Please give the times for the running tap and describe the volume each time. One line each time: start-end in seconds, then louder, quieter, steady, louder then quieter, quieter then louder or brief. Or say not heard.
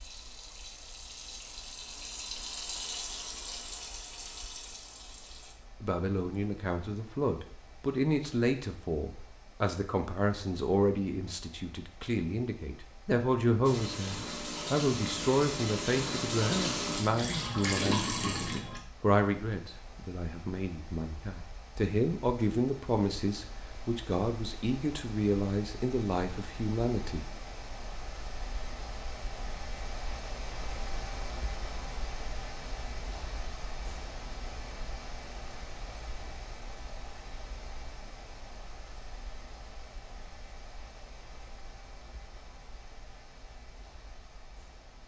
0.0-5.5 louder then quieter
13.6-18.8 louder.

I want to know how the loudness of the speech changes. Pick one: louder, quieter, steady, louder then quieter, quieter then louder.
steady.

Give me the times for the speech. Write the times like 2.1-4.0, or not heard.
5.8-27.3.